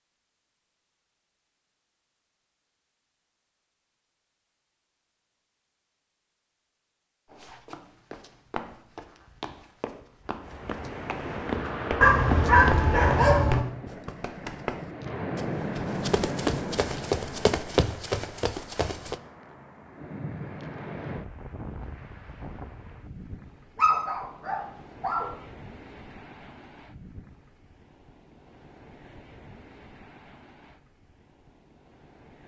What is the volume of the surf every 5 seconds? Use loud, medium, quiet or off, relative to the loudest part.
off, off, loud, loud, medium, quiet, quiet.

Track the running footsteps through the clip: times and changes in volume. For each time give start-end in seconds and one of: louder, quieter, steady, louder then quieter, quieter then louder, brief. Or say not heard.
7.3-19.1 louder.